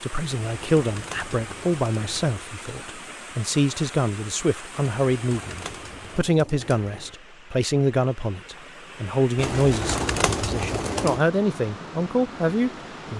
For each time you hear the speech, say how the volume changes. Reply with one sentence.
The speech can be heard from 0.0 to 13.1 s, at a steady volume.